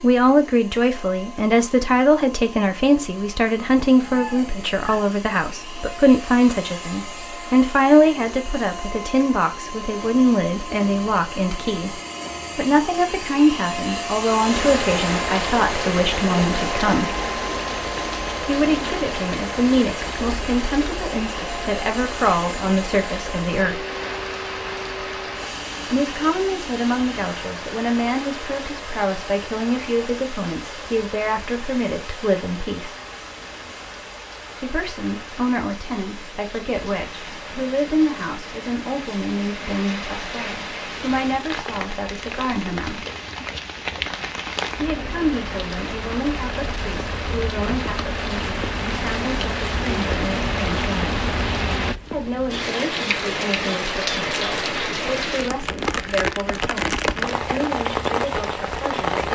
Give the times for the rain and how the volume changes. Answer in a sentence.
The rain can be heard from 14.3 to 59.3 s, getting quieter then louder.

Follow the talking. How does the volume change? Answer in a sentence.
The loudness of the talking goes down.